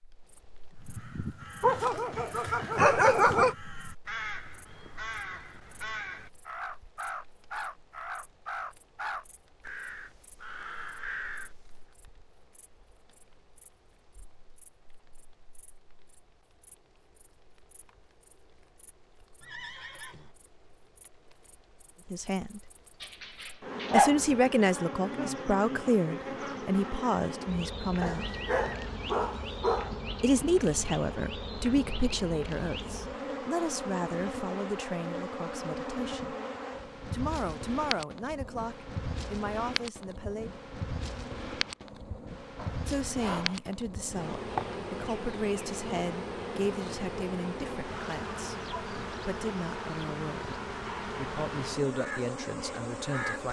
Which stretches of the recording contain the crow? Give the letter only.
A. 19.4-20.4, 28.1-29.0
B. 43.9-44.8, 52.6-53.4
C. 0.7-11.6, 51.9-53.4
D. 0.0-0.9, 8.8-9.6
C.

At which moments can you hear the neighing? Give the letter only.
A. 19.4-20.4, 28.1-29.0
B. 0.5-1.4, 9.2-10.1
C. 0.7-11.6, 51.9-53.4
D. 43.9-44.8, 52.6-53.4
A.